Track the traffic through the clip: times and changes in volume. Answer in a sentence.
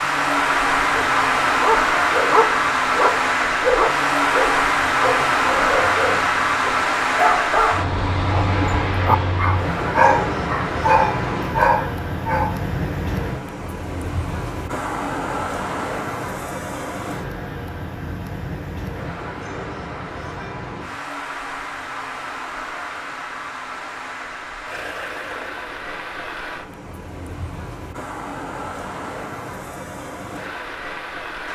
You can hear the traffic from 0.0 to 31.4 s, getting quieter.